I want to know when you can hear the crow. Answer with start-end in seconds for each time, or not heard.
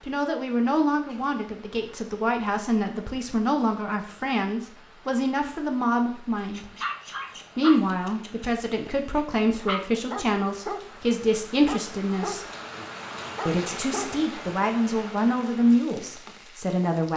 not heard.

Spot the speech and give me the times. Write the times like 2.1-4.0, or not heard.
0.0-6.7, 7.5-12.4, 13.4-17.1.